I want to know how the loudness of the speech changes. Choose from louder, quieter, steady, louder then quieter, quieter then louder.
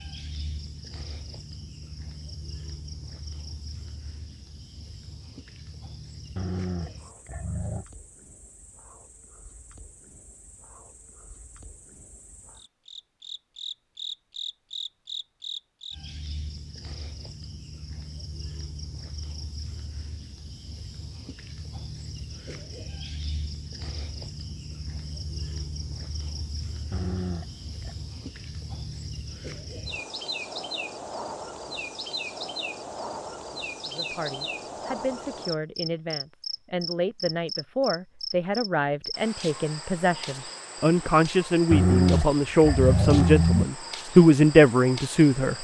louder.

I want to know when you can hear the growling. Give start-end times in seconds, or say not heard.
6.3-7.8, 26.9-27.9, 41.7-43.6.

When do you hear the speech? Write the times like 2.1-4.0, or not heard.
33.9-45.5.